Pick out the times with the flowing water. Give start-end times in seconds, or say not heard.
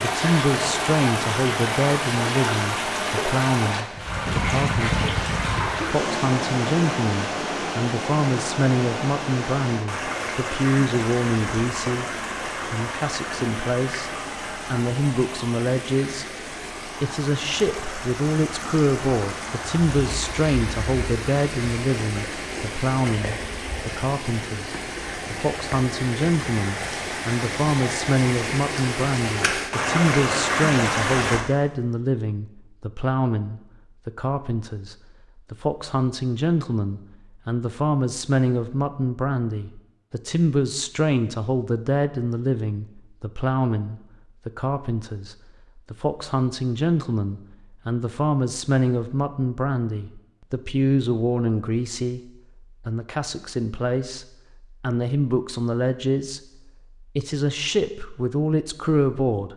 0.0-31.4.